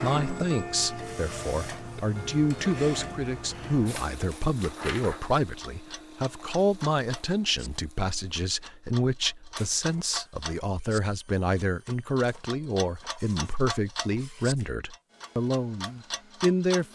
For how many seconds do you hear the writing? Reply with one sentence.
The writing can't be heard in this clip.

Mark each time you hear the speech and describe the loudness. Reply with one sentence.
You can hear the speech from 0.0 to 16.8 s, at a steady volume.